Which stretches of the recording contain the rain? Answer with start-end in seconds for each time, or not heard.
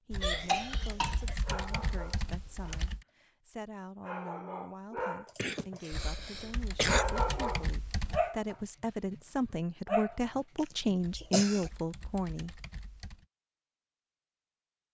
not heard.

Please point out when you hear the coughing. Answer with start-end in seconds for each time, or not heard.
0.2-1.4, 5.0-7.0, 10.6-11.7.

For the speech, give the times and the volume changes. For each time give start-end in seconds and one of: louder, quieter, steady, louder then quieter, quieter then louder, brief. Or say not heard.
0.1-12.6 louder.